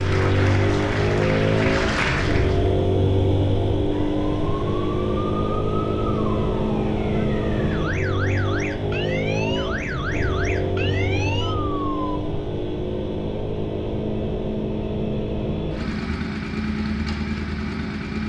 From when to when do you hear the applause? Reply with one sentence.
You can hear the applause from 0.0 to 2.8 s.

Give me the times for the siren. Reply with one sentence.
You can hear the siren from 3.9 to 12.2 s.